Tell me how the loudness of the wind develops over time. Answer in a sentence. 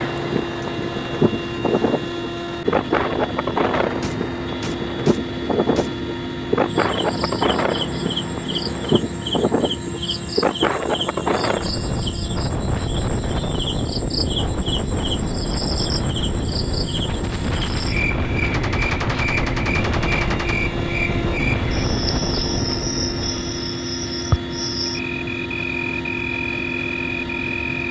The loudness of the wind stays about the same.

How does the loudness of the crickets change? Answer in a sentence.
The volume of the crickets stays about the same.